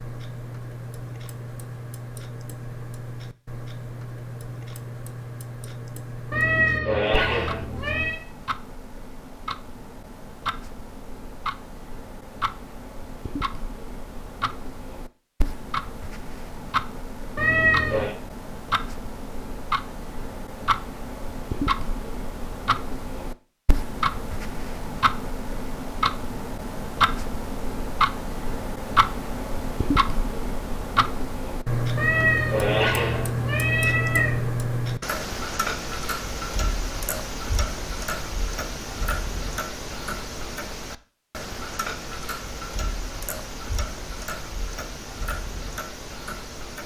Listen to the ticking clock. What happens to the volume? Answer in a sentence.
The loudness of the ticking clock goes up, then down.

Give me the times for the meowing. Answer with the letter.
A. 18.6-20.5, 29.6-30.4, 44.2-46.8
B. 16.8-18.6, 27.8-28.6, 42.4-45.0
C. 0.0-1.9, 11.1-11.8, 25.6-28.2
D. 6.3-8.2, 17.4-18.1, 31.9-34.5
D.